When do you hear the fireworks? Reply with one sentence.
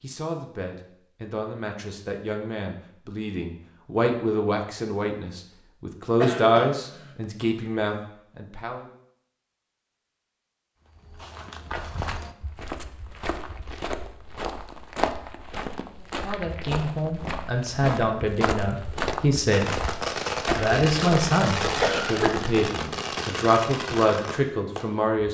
The fireworks can be heard from 19.5 to 24.9 s.